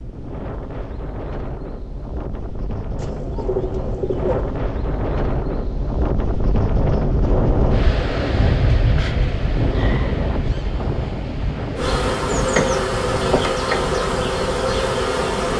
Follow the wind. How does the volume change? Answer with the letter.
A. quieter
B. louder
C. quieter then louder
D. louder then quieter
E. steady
D.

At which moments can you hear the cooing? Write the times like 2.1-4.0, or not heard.
3.0-4.5.